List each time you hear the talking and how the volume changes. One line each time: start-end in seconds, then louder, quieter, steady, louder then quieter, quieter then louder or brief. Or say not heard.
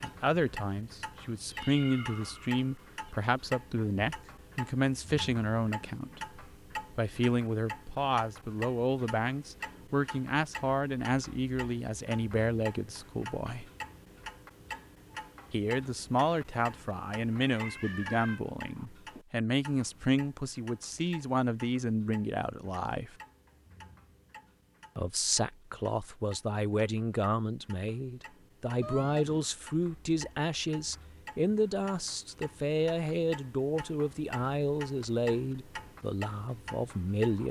0.0-13.7 steady
15.5-23.1 steady
24.9-37.4 steady.